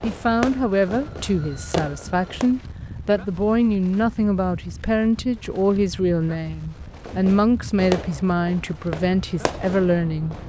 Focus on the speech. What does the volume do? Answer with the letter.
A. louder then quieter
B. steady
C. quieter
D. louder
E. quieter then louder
B.